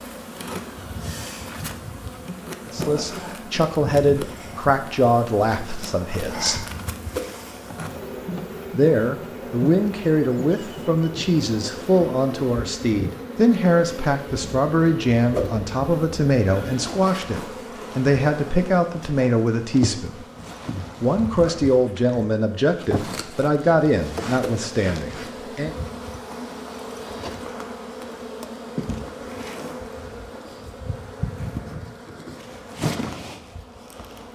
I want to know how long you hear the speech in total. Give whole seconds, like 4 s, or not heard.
20 s.